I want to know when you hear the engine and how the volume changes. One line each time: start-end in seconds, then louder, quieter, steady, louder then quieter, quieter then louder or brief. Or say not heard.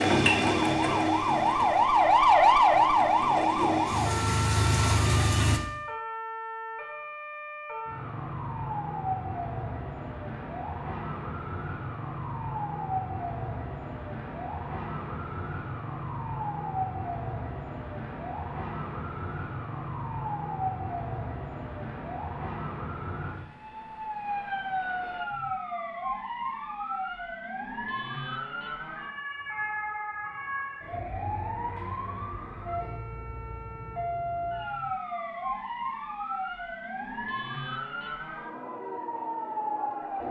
0.0-5.6 quieter then louder.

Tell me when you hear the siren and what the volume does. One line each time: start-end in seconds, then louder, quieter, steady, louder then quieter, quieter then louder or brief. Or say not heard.
0.2-40.2 quieter.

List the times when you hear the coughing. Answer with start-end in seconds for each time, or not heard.
not heard.